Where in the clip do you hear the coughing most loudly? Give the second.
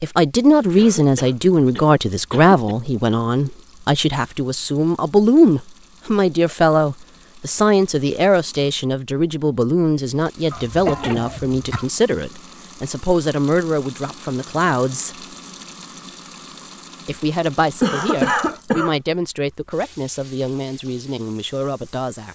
18 s.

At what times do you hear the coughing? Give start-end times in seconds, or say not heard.
0.8-2.8, 10.5-11.9, 17.8-18.9.